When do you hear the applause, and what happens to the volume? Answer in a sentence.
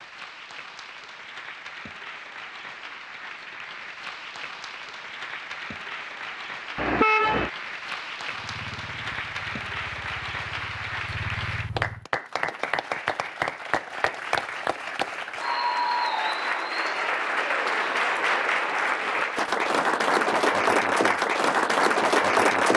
The applause can be heard from 0.0 to 22.7 s, getting louder.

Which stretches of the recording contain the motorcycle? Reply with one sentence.
The motorcycle can be heard from 8.3 to 12.1 s.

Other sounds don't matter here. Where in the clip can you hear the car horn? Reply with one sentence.
The car horn can be heard from 6.8 to 7.5 s.